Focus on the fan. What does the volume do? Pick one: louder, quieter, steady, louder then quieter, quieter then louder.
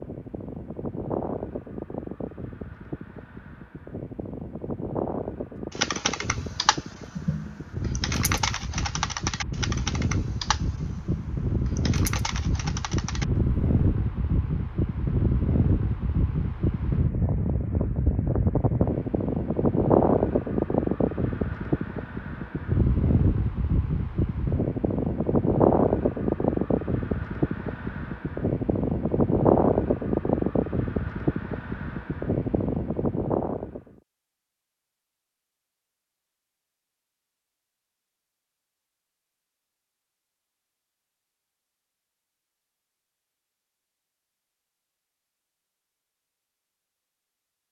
louder.